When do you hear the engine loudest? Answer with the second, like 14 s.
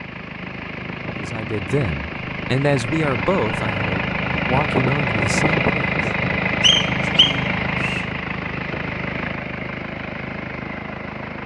5 s.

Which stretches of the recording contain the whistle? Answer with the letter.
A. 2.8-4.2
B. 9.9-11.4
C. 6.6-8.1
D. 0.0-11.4
C.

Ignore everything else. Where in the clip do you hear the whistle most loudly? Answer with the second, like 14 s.
7 s.